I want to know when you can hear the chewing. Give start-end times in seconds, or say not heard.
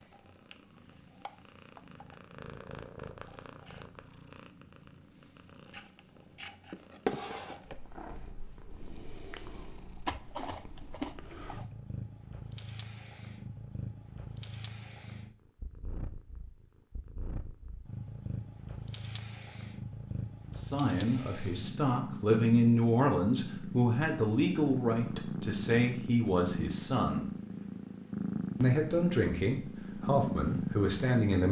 10.1-11.7.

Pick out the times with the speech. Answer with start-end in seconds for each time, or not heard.
20.6-27.2, 28.6-31.4.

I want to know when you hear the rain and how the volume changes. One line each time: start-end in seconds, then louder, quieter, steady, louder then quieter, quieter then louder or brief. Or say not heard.
not heard.